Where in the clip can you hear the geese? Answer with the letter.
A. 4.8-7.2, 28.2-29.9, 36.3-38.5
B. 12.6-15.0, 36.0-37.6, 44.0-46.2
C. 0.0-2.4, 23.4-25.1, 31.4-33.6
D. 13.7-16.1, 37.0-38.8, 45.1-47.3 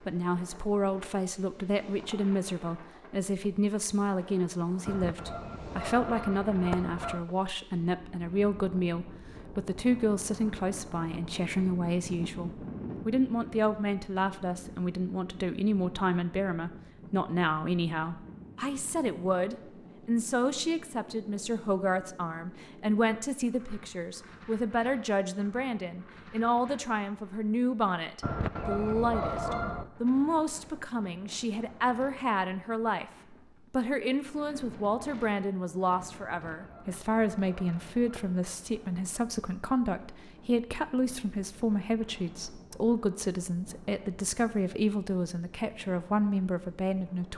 A.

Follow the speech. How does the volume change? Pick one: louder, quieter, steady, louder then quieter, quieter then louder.
steady.